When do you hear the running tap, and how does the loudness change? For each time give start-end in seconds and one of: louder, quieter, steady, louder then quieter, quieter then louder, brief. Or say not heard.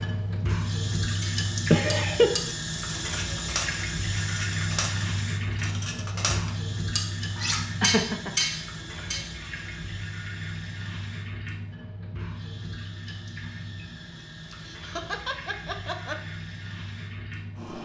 0.0-17.8 quieter.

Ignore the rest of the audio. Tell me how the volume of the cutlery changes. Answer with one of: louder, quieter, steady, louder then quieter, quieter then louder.
louder.